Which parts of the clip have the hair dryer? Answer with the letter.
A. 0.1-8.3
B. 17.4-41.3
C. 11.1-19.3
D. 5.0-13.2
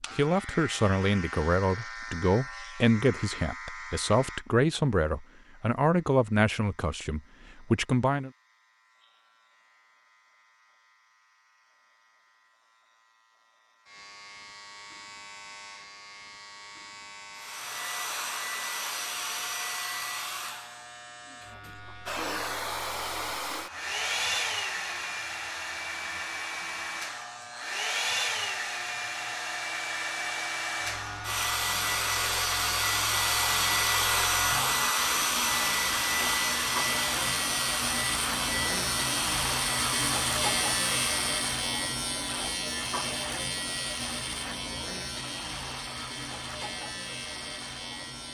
B.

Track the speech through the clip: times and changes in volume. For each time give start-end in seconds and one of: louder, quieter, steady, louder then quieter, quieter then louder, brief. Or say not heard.
0.1-8.3 steady.